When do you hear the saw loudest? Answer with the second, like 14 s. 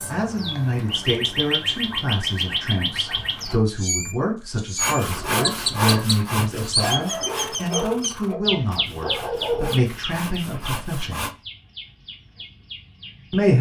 6 s.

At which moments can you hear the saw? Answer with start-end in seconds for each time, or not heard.
4.8-11.3.